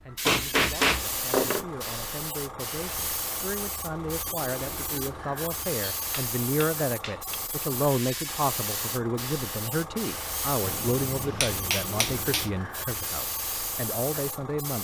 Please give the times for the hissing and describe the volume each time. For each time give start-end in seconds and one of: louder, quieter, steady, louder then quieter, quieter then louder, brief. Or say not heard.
0.0-14.7 steady.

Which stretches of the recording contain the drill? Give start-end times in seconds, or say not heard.
not heard.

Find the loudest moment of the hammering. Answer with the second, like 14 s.
1 s.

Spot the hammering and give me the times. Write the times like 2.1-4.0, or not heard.
0.2-1.6, 6.0-7.4, 10.6-12.5.